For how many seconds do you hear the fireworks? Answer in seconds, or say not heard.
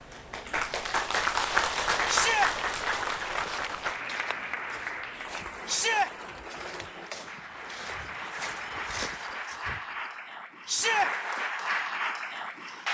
not heard.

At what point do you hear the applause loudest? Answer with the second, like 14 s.
2 s.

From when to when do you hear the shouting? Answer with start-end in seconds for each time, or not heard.
2.0-2.5, 5.7-6.1, 10.7-11.1.